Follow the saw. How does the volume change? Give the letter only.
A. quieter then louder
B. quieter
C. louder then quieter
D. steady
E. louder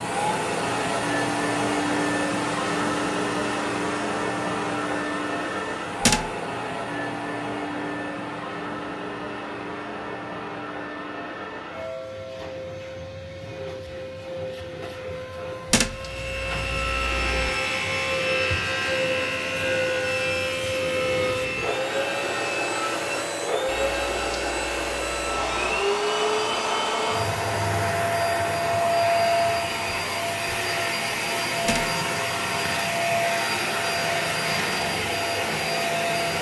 B.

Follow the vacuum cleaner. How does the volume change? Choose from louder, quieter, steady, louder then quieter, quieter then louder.
quieter then louder.